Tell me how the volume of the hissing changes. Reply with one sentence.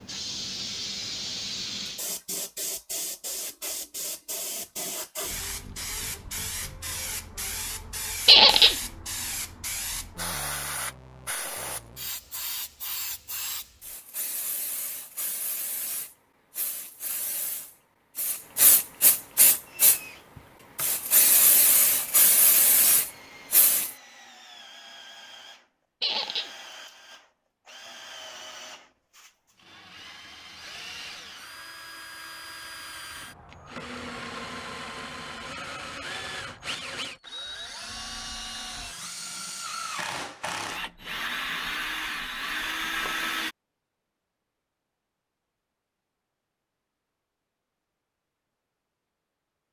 The volume of the hissing goes up.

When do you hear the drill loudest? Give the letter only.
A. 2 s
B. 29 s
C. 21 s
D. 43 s
D.